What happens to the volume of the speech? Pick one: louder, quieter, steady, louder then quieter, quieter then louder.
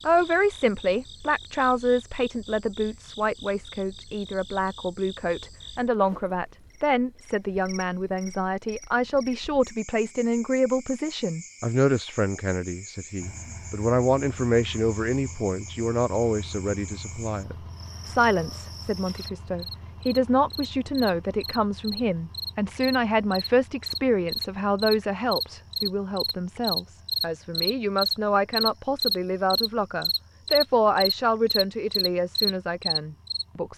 steady.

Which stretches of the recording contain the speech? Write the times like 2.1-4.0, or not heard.
0.1-33.7.